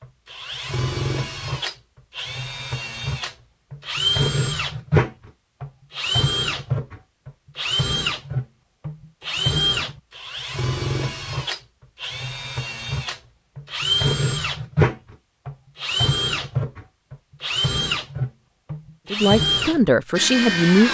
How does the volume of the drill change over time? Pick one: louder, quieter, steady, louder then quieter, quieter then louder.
steady.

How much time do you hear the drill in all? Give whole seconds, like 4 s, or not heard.
21 s.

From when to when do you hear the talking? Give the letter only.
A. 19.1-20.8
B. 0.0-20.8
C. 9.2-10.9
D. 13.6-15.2
A.